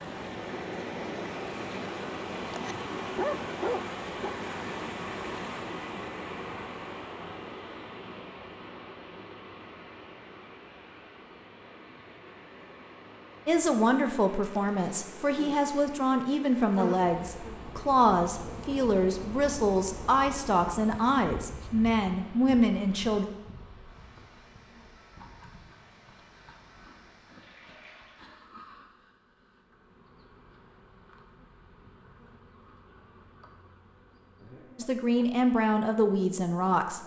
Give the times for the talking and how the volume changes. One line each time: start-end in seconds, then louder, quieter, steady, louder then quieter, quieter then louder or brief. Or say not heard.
13.4-23.2 steady
34.8-37.0 brief.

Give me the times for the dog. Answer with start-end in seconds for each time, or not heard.
2.5-4.3.